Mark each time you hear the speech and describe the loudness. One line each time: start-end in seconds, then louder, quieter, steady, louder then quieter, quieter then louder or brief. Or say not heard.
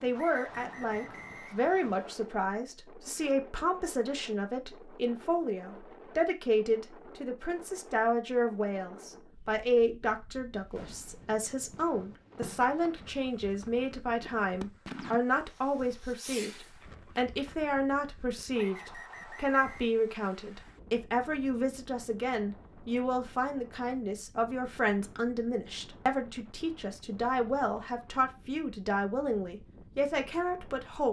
0.0-31.0 steady.